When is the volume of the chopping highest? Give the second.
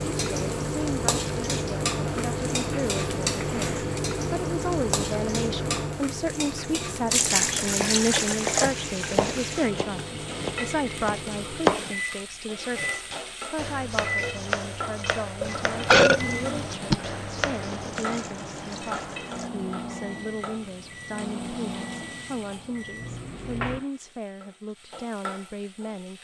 12 s.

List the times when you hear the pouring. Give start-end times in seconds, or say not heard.
7.1-8.7, 17.9-19.5.